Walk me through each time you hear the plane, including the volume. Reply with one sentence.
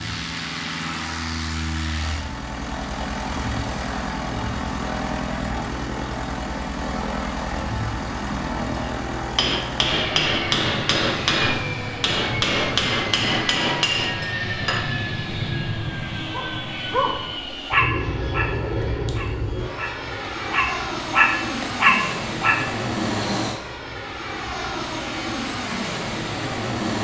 You can hear the plane from 0.0 to 26.9 s, at a steady volume.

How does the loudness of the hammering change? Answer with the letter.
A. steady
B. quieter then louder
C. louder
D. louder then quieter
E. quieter
A.